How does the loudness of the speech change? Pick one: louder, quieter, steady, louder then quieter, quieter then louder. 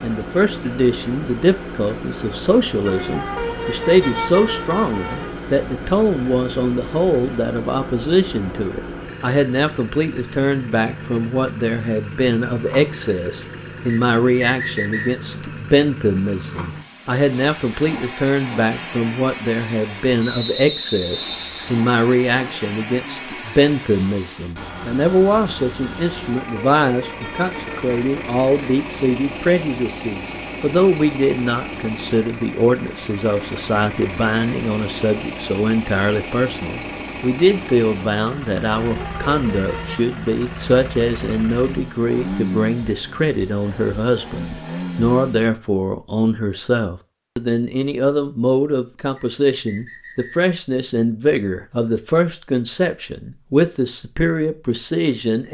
steady.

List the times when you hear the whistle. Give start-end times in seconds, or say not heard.
13.8-15.2, 20.2-21.7, 49.1-50.5.